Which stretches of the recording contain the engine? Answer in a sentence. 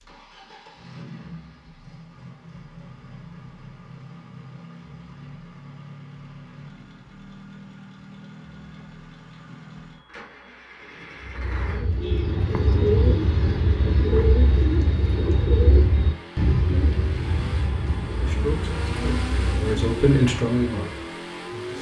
The engine can be heard from 0.0 to 21.7 s.